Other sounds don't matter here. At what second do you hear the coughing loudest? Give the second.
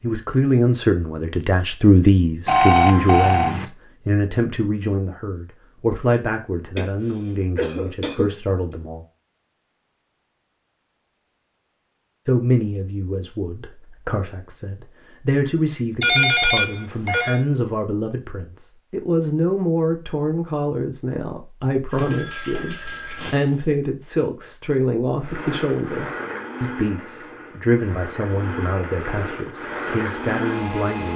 8 s.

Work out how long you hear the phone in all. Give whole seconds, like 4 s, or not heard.
4 s.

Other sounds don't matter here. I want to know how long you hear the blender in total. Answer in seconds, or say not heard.
6 s.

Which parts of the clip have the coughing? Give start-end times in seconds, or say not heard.
6.8-8.3, 22.8-23.6.